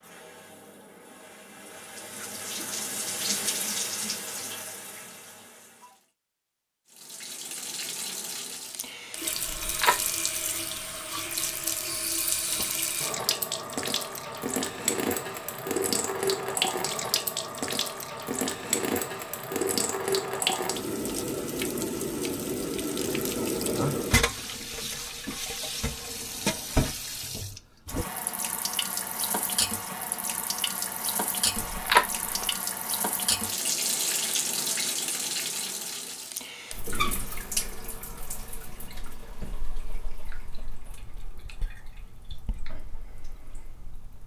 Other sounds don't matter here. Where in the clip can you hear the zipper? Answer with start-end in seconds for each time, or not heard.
9.4-9.9, 31.6-32.5.